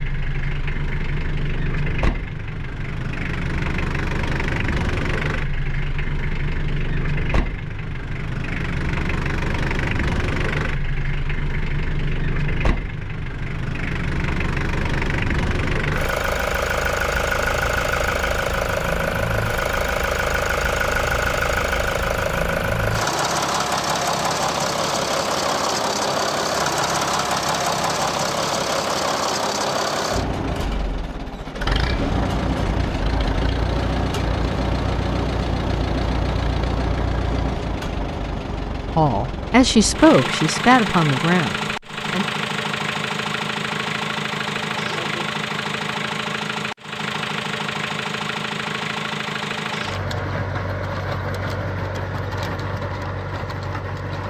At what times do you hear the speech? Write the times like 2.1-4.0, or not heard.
38.9-42.2.